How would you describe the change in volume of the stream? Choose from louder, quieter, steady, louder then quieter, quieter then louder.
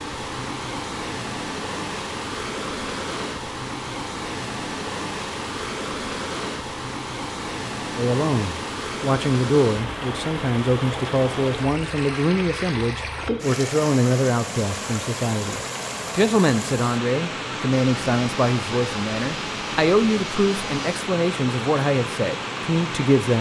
steady.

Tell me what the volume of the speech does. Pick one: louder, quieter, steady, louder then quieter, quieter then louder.
steady.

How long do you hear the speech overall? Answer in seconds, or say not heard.
15 s.